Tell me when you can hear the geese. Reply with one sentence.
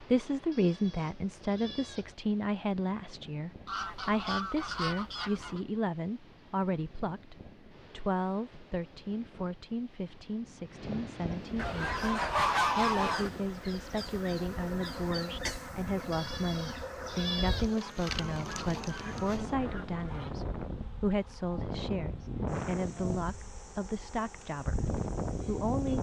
You can hear the geese from 3.6 to 5.6 s, from 11.6 to 13.3 s and from 17.8 to 20.3 s.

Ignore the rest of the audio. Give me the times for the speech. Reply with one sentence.
The speech can be heard from 0.0 to 25.9 s.